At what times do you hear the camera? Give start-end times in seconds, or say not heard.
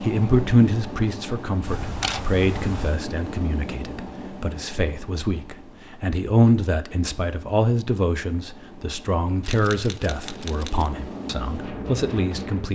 1.6-3.0, 9.4-10.9.